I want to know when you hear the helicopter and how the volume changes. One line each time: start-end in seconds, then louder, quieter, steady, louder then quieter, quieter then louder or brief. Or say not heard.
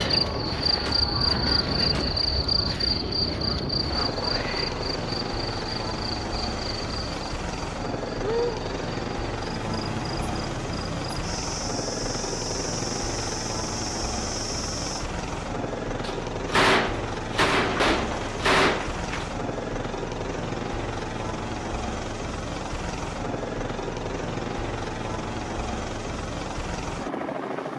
0.0-27.7 steady.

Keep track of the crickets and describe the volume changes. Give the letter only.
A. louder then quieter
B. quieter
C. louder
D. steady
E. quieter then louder
B.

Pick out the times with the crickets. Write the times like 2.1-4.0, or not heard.
0.0-15.1.